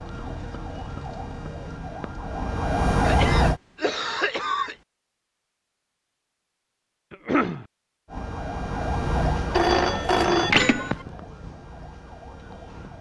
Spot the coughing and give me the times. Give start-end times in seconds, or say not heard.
3.0-4.8, 7.1-7.7.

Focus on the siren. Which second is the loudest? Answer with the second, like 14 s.
3 s.